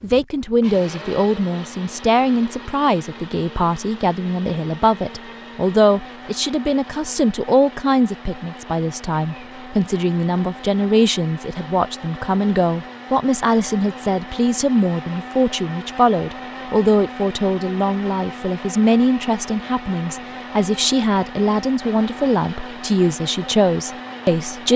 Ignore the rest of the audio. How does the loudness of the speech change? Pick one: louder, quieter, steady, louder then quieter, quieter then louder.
steady.